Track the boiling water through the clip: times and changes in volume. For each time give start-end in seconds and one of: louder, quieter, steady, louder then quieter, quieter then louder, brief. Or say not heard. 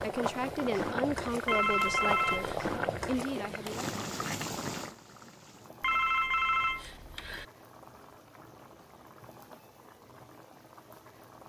0.0-11.4 quieter.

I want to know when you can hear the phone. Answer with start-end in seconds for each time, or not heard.
1.4-2.8, 5.8-7.5.